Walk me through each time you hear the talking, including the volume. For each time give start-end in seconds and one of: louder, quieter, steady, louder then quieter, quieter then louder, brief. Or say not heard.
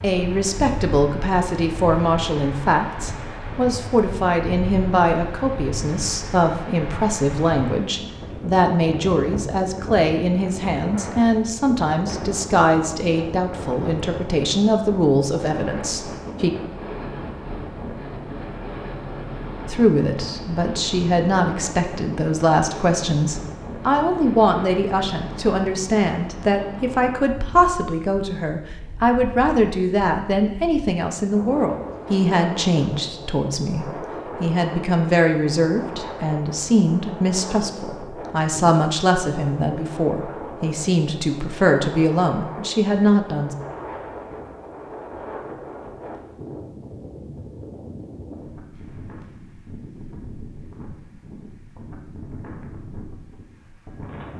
0.0-16.5 steady
19.6-43.5 steady.